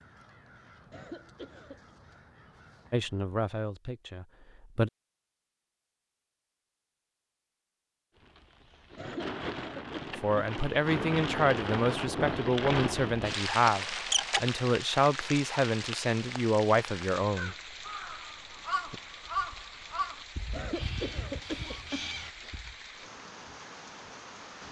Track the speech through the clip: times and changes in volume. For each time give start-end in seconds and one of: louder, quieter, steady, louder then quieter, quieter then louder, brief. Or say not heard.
2.9-4.9 brief
10.2-17.6 steady.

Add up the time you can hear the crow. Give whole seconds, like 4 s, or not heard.
9 s.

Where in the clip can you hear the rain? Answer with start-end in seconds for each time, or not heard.
8.2-24.6.